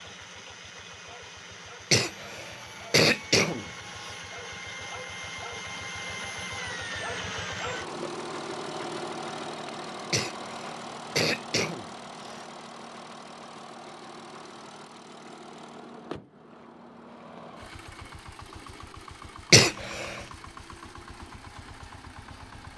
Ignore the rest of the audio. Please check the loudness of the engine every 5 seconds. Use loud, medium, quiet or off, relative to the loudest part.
medium, loud, medium, medium, medium.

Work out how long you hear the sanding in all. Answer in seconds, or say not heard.
not heard.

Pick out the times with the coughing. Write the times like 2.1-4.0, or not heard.
1.9-4.2, 10.1-12.4, 19.5-20.2.